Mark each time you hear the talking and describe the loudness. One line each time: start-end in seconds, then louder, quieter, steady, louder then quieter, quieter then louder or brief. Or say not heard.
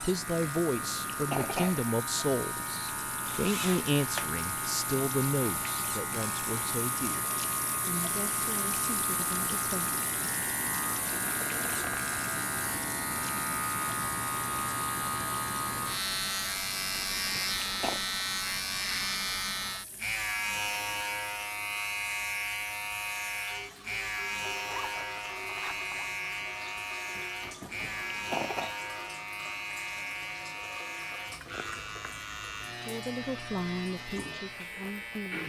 0.0-9.9 quieter
32.7-35.4 brief.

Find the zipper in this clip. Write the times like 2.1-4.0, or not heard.
3.2-4.3, 24.6-26.1.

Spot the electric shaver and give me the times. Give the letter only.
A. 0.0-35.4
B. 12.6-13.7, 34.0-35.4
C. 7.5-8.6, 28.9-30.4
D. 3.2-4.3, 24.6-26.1
A.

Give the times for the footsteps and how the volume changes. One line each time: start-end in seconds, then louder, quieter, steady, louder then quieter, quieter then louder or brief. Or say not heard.
not heard.